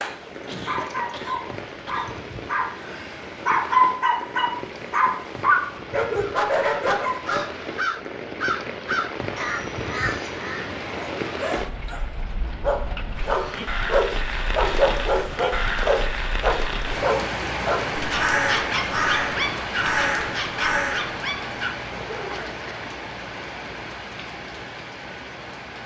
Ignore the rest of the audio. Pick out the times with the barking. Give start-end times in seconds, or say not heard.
0.0-7.5, 10.8-22.6.